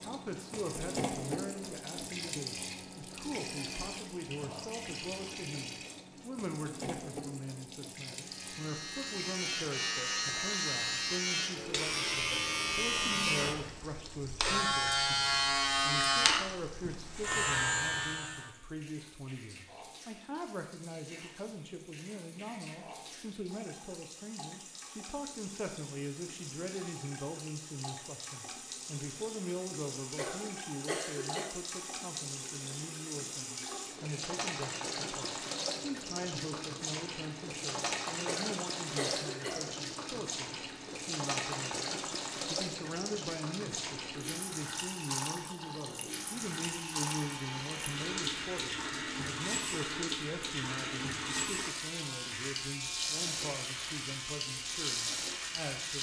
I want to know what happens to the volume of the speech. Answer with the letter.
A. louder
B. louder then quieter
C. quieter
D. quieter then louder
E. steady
E.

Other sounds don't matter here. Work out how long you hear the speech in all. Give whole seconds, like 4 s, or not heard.
56 s.